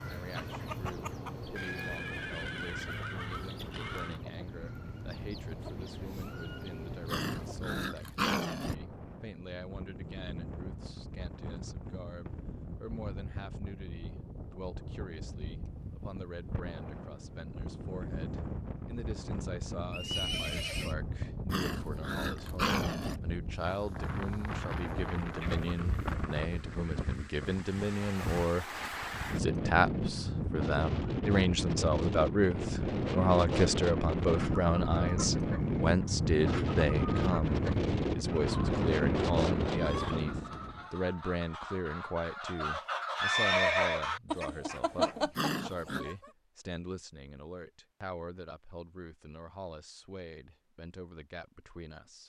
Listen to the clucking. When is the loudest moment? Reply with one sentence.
The volume of the clucking peaks at 45 seconds.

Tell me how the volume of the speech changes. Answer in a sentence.
The loudness of the speech goes up, then down.